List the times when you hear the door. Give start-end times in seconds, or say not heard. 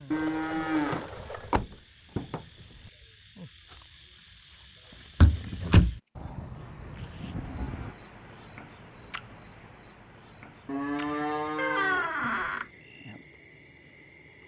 0.9-2.5, 5.2-6.0, 11.6-12.7.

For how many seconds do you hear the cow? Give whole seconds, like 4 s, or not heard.
5 s.